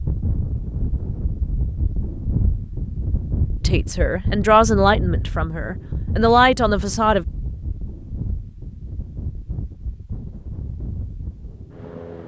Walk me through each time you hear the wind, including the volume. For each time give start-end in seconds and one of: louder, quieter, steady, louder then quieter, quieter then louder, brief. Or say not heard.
0.0-12.2 quieter.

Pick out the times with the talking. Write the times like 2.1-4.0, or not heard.
3.6-7.2.